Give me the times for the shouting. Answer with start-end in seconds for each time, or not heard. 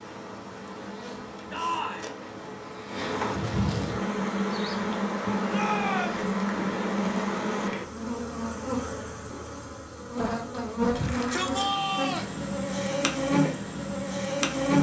1.5-2.1, 5.5-6.3, 10.9-12.3.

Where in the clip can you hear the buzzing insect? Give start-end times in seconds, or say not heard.
0.0-14.7.